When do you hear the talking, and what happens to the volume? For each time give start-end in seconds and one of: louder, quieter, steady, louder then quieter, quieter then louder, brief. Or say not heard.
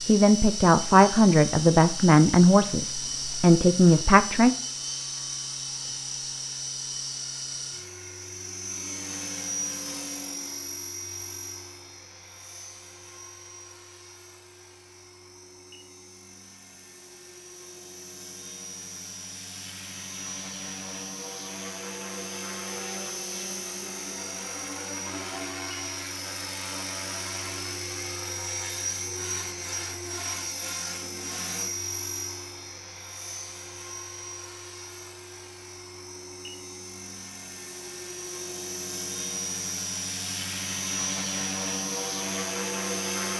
0.1-4.5 quieter then louder.